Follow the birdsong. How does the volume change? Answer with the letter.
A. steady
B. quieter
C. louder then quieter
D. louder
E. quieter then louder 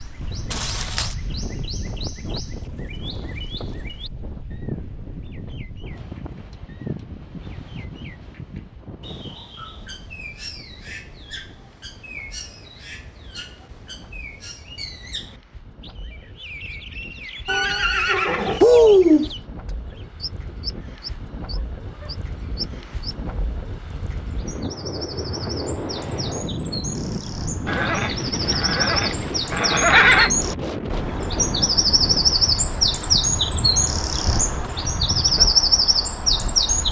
D.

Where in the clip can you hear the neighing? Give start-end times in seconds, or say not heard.
0.5-1.1, 17.4-19.3, 27.6-30.3.